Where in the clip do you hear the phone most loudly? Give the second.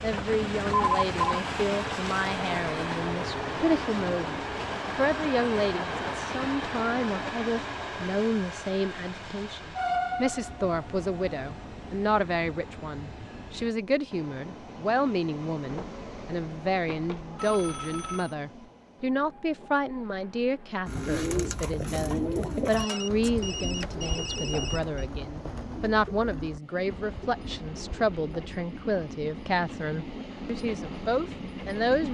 1 s.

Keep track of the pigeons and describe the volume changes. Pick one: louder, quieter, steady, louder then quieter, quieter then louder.
quieter.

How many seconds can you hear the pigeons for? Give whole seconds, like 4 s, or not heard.
8 s.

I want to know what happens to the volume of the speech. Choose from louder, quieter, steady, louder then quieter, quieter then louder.
steady.